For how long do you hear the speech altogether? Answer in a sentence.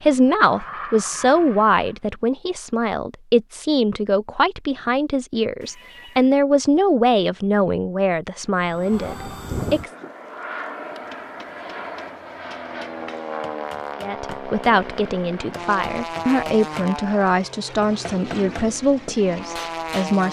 You can hear the speech for 16 seconds altogether.